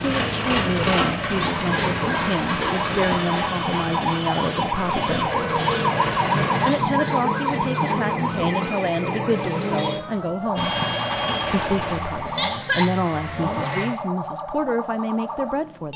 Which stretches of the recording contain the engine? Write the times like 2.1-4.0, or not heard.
0.0-6.7, 10.6-13.8.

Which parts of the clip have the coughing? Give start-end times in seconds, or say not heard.
1.4-3.2, 6.7-8.8, 12.3-12.9.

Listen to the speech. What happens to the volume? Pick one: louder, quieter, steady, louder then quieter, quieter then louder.
steady.